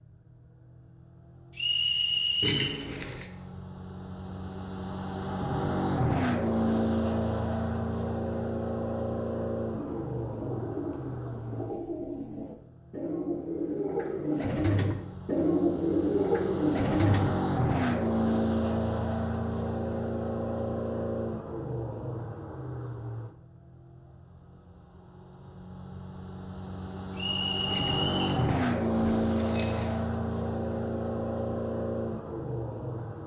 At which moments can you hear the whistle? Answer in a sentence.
You can hear the whistle from 1.6 to 2.8 s and from 27.1 to 28.4 s.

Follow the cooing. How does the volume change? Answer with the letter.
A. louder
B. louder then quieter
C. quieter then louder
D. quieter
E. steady
A.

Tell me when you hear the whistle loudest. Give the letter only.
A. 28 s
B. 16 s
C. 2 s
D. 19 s
C.